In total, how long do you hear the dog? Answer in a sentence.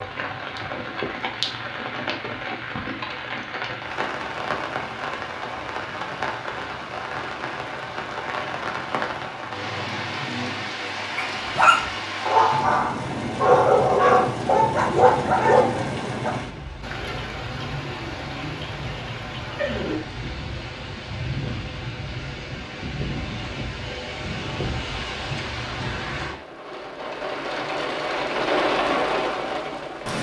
The dog can be heard for 5 seconds in total.